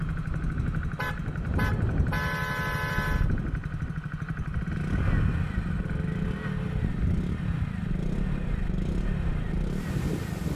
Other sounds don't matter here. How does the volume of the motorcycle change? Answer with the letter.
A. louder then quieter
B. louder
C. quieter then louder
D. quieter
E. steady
E.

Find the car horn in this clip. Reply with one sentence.
The car horn can be heard from 0.9 to 3.3 s and from 5.8 to 6.8 s.